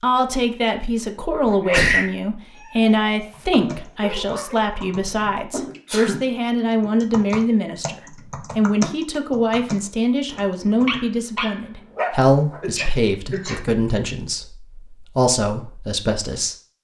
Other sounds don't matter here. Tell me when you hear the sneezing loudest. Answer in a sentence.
The loudest moment of the sneezing is at 2 seconds.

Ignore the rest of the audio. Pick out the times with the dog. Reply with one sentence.
The dog can be heard from 2.5 to 4.8 s and from 10.3 to 12.7 s.